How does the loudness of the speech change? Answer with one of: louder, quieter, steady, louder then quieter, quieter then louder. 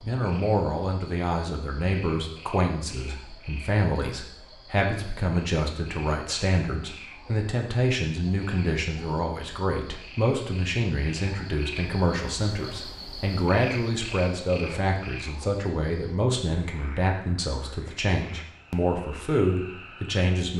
steady.